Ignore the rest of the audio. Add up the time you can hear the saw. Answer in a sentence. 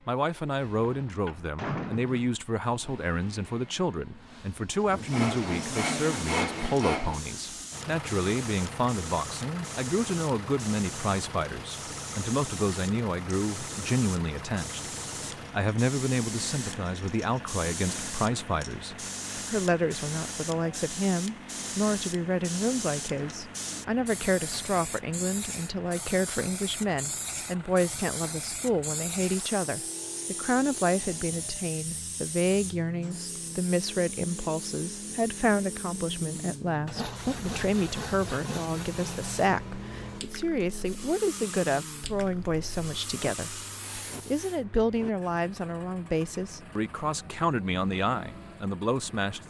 You can hear the saw for 5 seconds altogether.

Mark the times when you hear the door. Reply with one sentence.
You can hear the door from 0.8 to 2.3 s.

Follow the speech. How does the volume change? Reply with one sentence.
The loudness of the speech stays about the same.